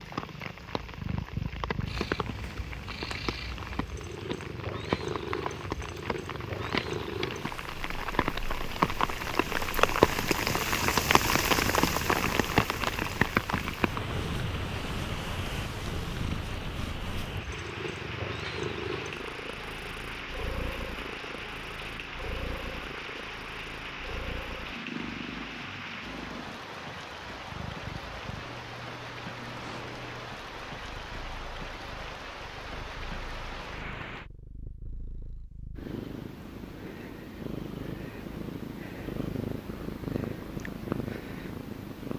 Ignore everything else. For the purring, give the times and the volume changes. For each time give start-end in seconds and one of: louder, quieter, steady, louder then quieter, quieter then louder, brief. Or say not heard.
0.0-42.1 quieter then louder.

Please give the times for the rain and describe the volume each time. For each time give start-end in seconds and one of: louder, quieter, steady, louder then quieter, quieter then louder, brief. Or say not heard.
0.0-34.2 louder then quieter.